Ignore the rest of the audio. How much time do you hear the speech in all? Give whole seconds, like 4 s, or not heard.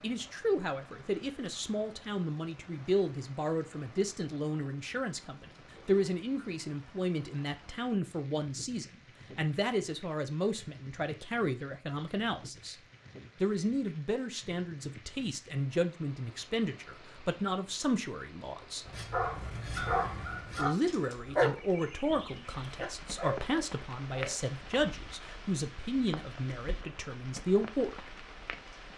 26 s.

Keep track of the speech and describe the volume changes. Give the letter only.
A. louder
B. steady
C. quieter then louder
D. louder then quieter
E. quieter
B.